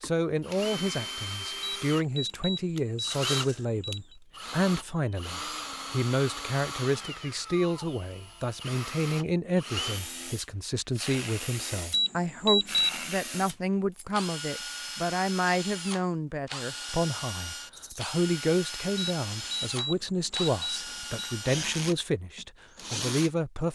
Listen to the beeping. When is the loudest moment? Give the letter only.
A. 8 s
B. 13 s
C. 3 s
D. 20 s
B.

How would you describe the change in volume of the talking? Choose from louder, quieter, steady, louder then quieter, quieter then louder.
steady.